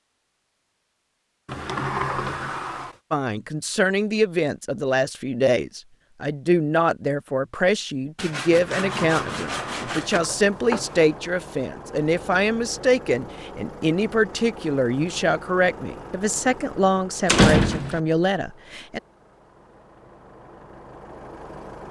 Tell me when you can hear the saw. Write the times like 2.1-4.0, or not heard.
8.2-10.2.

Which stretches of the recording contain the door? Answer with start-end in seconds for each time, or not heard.
1.4-3.0, 8.5-11.1, 17.2-18.0.